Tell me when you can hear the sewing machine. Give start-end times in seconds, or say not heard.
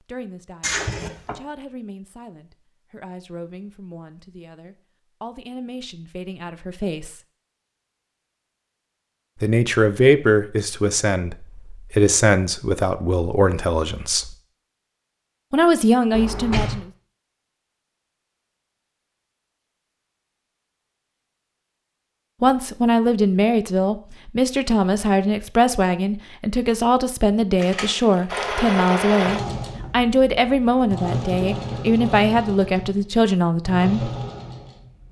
28.3-35.0.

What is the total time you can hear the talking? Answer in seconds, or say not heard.
25 s.